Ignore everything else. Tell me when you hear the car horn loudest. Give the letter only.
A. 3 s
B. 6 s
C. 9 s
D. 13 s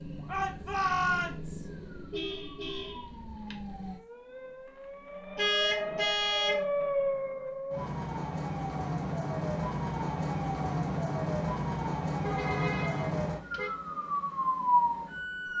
B.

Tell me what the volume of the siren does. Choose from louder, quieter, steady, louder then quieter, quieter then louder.
louder.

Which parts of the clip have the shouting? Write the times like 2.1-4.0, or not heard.
0.2-1.6.